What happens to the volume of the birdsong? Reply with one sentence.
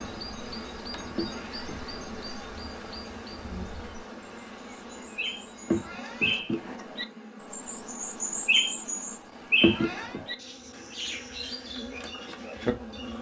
The volume of the birdsong goes up, then down.